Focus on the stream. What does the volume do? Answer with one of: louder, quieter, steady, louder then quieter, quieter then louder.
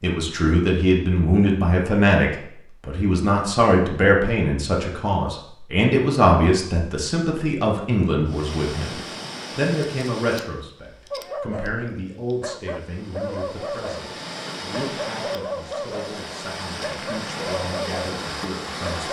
quieter then louder.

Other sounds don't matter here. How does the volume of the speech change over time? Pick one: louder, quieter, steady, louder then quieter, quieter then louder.
quieter.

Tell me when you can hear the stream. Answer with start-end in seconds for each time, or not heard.
8.2-19.0.